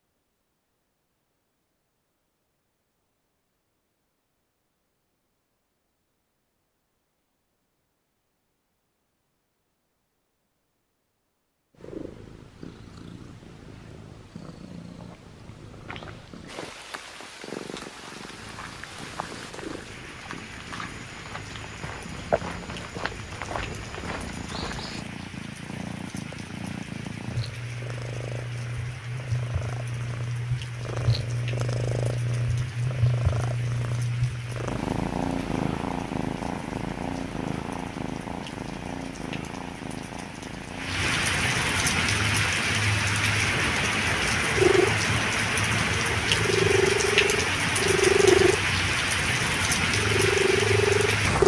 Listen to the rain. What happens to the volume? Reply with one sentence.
The volume of the rain goes up.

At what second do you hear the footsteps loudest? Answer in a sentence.
The loudest moment of the footsteps is at 22 seconds.